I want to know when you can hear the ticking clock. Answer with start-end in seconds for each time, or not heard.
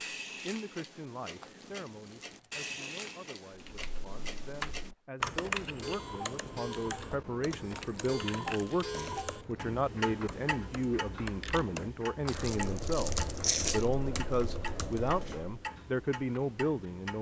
0.0-17.1.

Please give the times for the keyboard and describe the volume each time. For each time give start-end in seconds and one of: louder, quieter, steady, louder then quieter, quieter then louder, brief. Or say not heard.
3.6-15.6 quieter then louder.